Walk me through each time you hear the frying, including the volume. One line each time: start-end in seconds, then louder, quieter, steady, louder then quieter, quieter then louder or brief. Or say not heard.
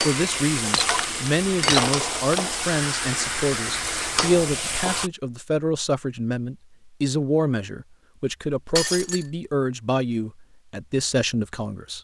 0.0-5.1 steady.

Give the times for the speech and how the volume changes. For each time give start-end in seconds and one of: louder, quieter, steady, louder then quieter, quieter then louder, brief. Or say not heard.
0.0-11.9 steady.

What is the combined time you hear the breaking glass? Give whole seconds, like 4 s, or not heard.
2 s.